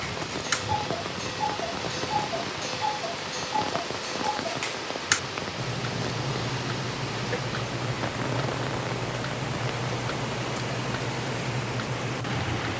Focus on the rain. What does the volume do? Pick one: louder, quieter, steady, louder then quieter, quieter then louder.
steady.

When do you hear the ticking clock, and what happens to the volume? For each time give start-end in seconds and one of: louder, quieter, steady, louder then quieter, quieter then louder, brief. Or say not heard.
0.0-12.7 steady.